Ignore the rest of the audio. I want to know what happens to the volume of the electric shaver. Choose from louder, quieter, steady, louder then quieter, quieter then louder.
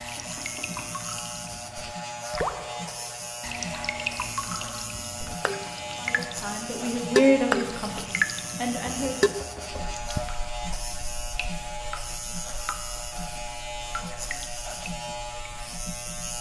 steady.